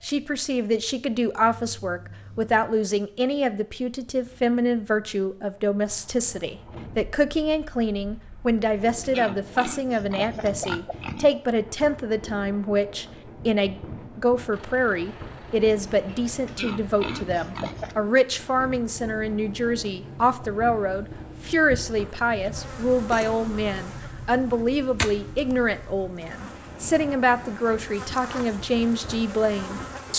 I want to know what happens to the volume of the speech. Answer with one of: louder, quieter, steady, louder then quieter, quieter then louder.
steady.